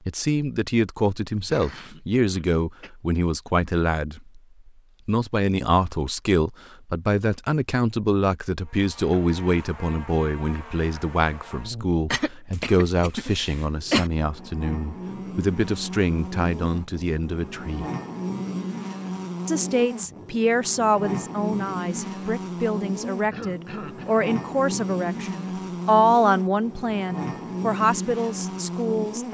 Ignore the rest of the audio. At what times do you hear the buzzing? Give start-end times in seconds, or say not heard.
8.6-29.2.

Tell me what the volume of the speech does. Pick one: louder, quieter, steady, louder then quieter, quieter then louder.
steady.